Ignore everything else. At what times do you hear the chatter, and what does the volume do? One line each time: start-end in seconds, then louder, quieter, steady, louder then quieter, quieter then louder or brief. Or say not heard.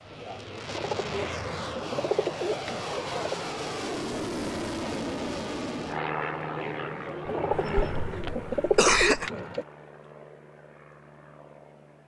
0.0-8.4 steady.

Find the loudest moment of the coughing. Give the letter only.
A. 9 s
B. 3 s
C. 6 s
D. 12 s
A.